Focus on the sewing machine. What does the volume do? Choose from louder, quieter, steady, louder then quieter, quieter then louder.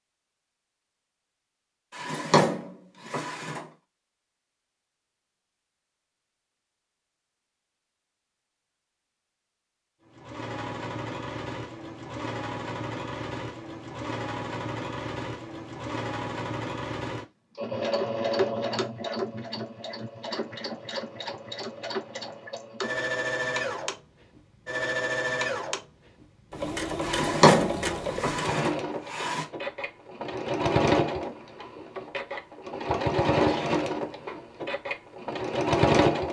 louder.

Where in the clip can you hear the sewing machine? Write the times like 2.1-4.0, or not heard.
10.1-36.2.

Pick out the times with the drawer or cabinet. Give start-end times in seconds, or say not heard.
1.9-3.6, 27.0-29.4.